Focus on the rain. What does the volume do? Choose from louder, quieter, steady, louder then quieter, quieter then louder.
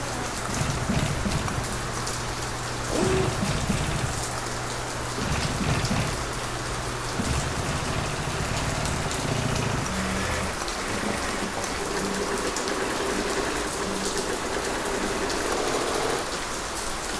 steady.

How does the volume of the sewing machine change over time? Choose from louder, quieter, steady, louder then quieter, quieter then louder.
steady.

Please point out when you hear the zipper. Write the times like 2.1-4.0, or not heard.
2.9-3.5.